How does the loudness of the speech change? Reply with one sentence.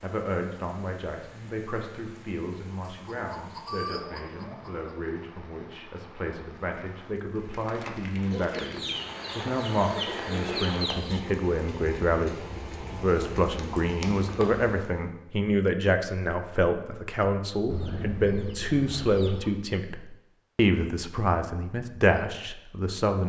The loudness of the speech goes up.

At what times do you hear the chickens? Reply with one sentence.
The chickens can be heard from 2.9 to 5.0 s, from 8.3 to 11.2 s and from 17.6 to 19.5 s.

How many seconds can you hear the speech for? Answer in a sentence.
You can hear the speech for 23 seconds altogether.